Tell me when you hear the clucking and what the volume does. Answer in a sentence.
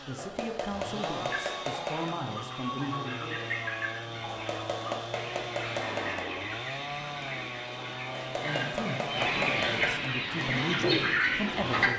The clucking can be heard from 1.2 to 11.9 s, getting louder.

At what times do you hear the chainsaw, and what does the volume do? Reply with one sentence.
You can hear the chainsaw from 0.0 to 11.9 s, at a steady volume.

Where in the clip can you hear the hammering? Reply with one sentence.
The hammering can be heard from 0.1 to 2.1 s, from 4.2 to 6.2 s and from 8.2 to 10.1 s.